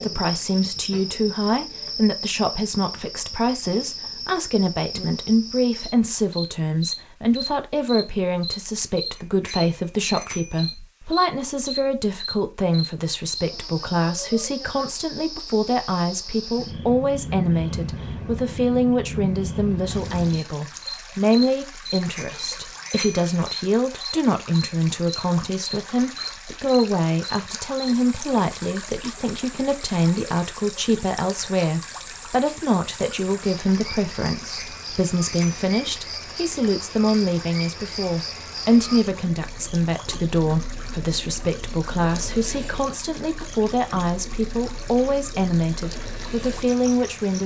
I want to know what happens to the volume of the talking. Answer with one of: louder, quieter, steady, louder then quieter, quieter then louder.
steady.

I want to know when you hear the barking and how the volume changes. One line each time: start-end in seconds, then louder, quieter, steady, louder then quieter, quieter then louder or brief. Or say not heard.
not heard.